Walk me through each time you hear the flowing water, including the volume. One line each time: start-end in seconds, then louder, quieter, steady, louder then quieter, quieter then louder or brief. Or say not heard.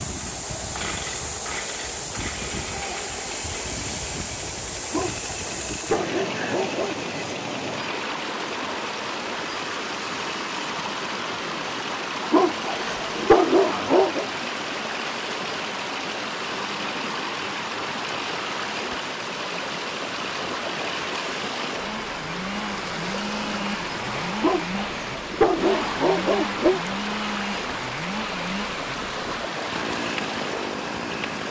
0.0-31.4 steady.